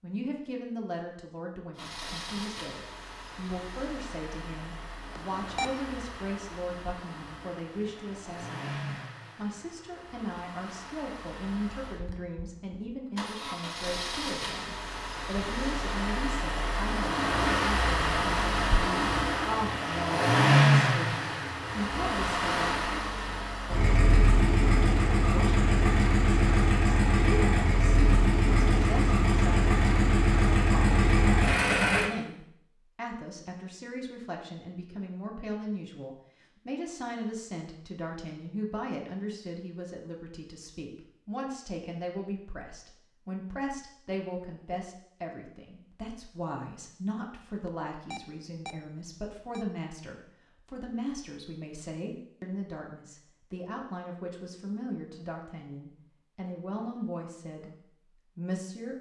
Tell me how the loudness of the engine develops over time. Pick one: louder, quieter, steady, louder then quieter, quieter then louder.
louder.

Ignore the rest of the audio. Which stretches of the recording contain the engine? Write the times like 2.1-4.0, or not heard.
1.8-32.1.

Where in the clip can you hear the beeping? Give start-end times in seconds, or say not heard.
5.2-5.7, 47.6-49.6.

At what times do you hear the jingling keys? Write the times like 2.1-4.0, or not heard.
not heard.